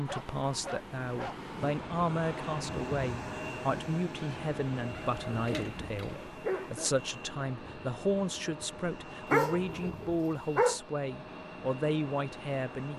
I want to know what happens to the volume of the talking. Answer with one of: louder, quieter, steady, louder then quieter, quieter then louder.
steady.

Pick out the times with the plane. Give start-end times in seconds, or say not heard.
0.0-12.9.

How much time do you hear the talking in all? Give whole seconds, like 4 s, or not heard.
13 s.